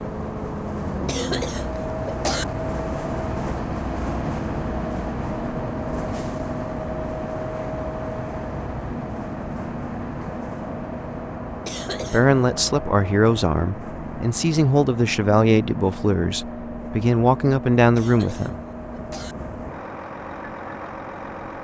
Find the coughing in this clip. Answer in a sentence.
The coughing can be heard from 1.1 to 2.5 s, from 11.7 to 12.4 s and from 17.9 to 19.4 s.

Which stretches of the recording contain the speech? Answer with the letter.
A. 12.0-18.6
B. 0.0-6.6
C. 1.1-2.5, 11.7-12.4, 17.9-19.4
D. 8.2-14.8
A.